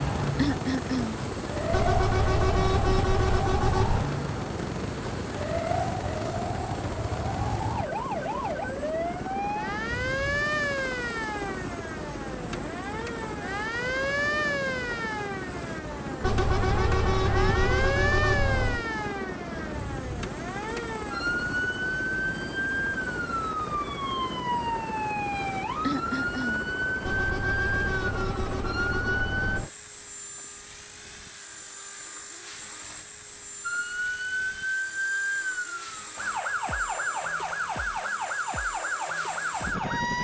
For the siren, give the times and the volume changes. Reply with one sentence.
You can hear the siren from 0.0 to 29.6 s, at a steady volume; and from 33.6 to 40.2 s, at a steady volume.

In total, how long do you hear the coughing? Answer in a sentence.
You can hear the coughing for 2 seconds altogether.